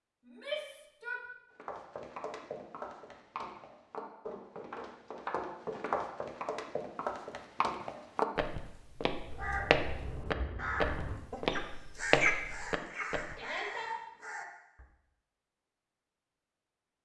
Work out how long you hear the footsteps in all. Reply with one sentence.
You can hear the footsteps for 12 seconds altogether.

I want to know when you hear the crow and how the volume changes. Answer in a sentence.
The crow can be heard from 9.2 to 14.8 s, getting louder then quieter.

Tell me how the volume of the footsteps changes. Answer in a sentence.
The loudness of the footsteps goes up.